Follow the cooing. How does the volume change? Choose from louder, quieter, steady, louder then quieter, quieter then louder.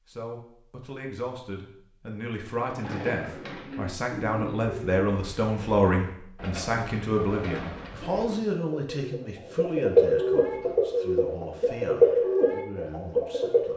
louder.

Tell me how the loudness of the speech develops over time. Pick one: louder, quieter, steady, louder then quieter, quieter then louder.
louder then quieter.